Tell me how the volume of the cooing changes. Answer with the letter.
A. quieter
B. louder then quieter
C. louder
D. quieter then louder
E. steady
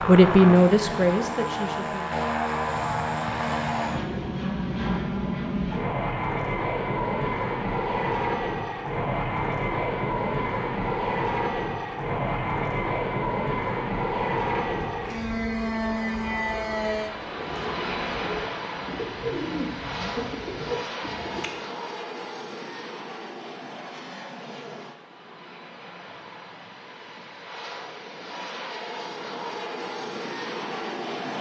C.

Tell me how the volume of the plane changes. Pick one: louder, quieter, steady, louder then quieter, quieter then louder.
quieter.